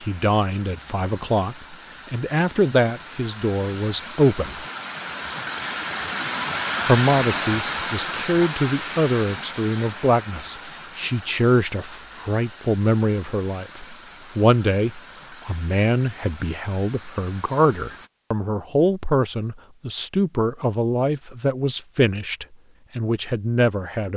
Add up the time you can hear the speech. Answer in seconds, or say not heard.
22 s.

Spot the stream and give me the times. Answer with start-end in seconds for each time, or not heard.
0.0-18.1.